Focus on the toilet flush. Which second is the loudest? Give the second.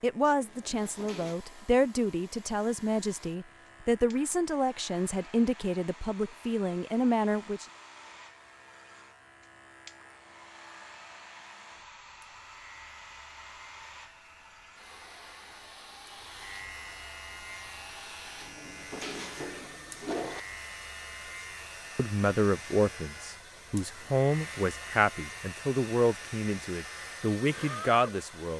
20 s.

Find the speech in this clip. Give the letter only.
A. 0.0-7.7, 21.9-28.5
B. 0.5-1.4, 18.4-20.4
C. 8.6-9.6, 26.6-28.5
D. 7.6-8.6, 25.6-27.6
A.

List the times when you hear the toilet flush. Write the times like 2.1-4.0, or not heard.
0.5-1.4, 18.4-20.4.